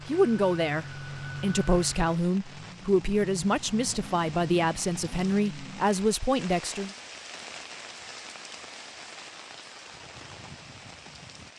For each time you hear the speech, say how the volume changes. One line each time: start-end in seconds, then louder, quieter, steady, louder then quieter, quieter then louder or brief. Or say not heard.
0.1-6.9 steady.